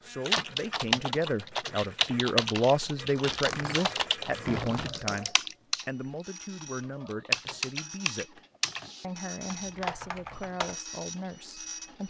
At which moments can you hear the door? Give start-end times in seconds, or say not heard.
3.2-5.1.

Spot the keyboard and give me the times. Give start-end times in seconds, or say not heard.
0.2-10.8.